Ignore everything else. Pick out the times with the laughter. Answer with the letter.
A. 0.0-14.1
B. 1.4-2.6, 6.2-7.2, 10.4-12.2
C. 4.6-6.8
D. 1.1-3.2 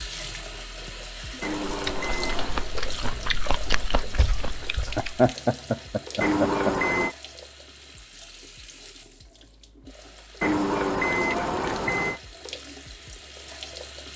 C.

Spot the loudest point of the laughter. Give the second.
5 s.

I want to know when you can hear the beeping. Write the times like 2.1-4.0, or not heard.
1.4-2.6, 6.2-7.2, 10.4-12.2.